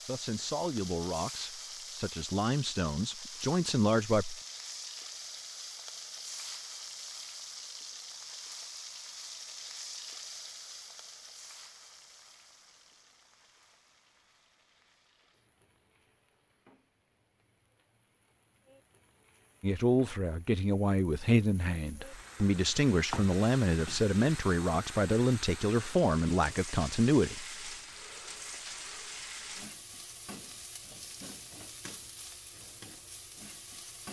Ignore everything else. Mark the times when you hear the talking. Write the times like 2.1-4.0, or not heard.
0.1-4.3, 19.6-27.4.